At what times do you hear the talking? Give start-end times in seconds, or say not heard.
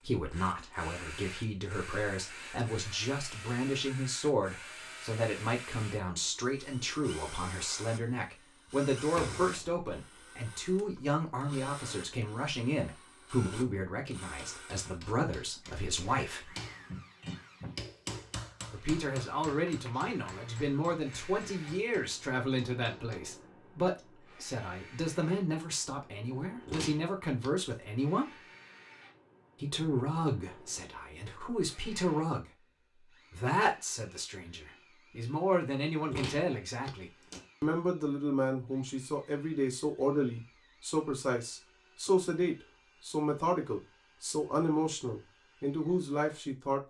0.0-16.5, 18.7-28.4, 29.6-46.8.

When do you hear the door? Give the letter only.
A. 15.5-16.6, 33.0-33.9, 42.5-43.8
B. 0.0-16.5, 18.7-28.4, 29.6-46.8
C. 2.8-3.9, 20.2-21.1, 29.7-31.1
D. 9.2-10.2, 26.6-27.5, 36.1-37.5
D.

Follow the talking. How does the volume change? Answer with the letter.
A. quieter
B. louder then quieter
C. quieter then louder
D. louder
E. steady
E.